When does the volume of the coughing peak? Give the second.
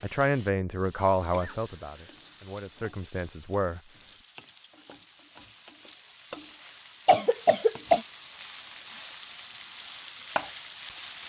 8 s.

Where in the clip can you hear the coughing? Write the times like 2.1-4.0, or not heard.
1.3-2.9, 7.0-8.0.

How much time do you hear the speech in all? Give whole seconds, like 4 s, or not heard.
4 s.